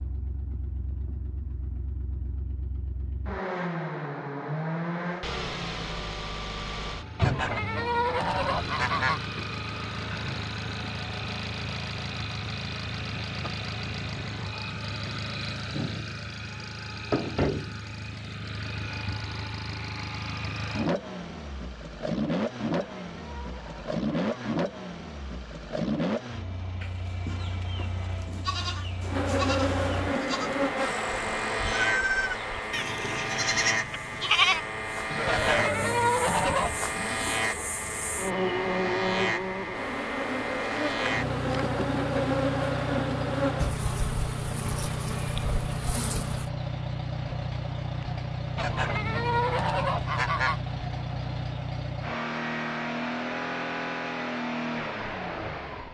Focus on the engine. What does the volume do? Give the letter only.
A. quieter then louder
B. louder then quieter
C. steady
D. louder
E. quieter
C.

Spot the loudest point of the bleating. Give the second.
34 s.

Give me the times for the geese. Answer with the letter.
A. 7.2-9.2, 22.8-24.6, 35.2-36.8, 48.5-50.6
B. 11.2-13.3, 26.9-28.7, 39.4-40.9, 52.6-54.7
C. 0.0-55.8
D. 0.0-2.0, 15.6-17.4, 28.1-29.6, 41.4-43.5
A.